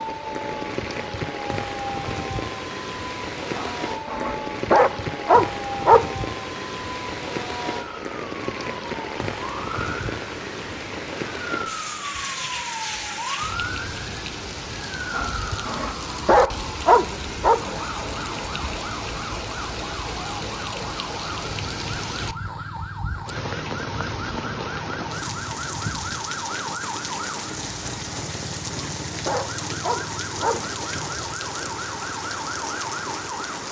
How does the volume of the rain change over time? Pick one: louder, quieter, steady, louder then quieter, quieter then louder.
steady.